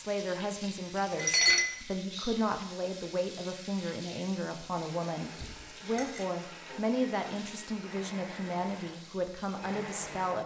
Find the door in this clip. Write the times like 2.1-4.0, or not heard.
5.3-5.8.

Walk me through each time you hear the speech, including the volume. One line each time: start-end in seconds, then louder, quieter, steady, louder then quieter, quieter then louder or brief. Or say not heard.
0.0-10.4 steady.